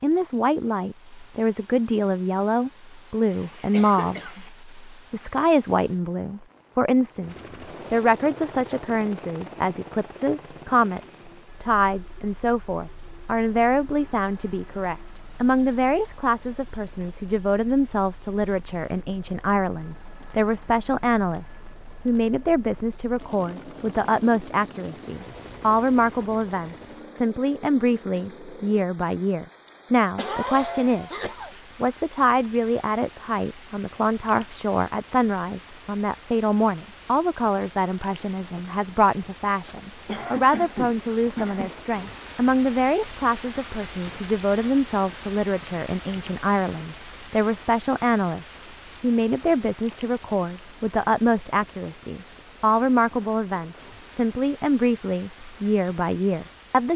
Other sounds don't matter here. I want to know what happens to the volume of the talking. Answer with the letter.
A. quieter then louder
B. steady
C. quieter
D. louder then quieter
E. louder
B.